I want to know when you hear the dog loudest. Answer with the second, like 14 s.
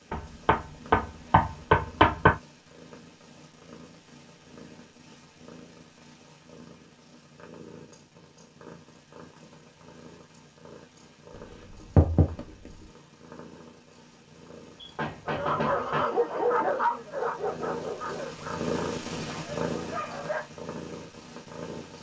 17 s.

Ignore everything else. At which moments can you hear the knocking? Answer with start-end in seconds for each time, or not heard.
0.1-2.4, 11.3-12.9, 14.8-16.1.